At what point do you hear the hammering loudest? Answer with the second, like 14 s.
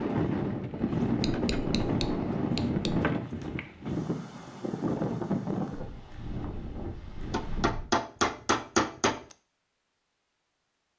9 s.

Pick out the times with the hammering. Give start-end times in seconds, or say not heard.
1.2-3.0, 7.3-9.3.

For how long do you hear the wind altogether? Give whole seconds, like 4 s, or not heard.
8 s.